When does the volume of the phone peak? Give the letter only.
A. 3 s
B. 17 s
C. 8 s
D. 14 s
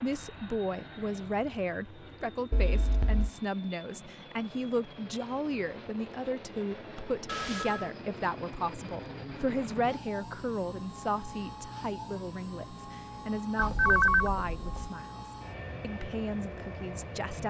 D.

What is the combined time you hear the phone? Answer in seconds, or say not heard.
3 s.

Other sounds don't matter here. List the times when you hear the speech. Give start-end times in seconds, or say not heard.
0.0-17.4.